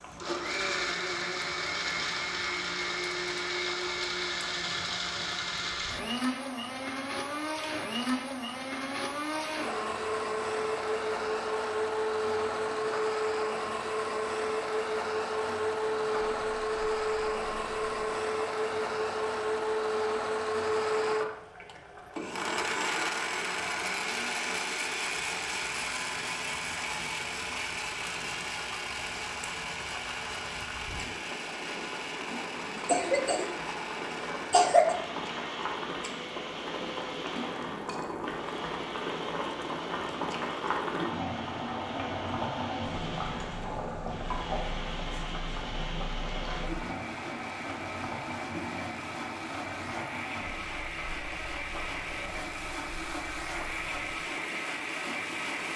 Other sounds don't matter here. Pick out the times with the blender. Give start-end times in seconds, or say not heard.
0.0-55.7.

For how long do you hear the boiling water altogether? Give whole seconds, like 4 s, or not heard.
56 s.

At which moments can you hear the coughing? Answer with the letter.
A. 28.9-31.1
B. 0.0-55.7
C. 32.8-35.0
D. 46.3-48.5
C.